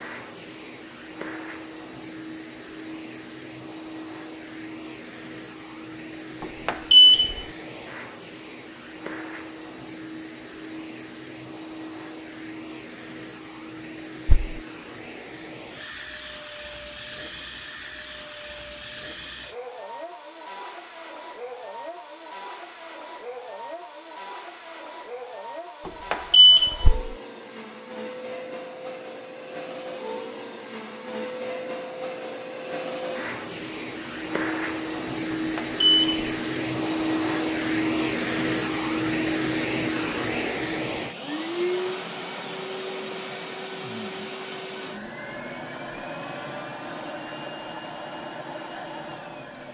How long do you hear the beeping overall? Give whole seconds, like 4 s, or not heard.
3 s.